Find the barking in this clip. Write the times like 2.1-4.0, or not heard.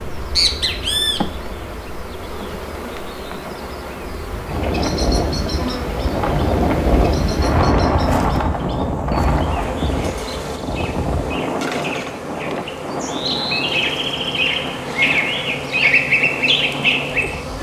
not heard.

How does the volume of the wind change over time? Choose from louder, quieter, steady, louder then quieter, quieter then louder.
quieter.